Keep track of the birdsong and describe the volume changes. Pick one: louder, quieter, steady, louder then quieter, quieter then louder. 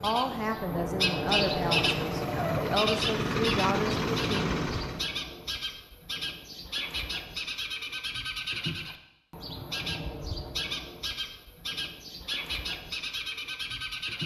quieter.